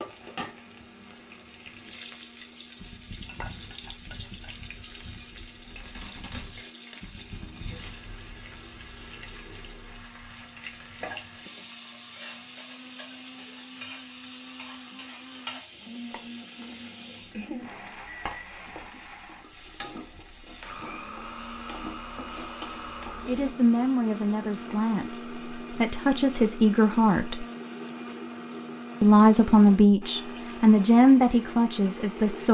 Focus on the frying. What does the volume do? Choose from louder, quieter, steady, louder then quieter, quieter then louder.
steady.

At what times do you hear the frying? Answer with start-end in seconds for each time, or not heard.
0.0-23.6.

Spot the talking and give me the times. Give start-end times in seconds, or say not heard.
23.2-27.4, 29.0-32.5.